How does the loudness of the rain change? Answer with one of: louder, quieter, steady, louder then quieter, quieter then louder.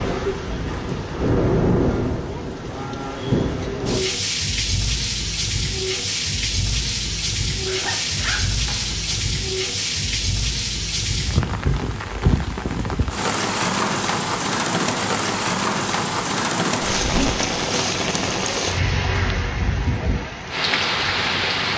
steady.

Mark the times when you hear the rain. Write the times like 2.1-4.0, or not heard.
0.0-21.7.